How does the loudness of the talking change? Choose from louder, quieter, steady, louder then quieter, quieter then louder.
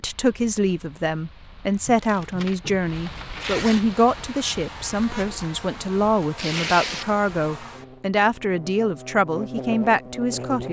steady.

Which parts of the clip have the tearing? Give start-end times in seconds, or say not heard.
1.9-3.9, 6.3-7.1.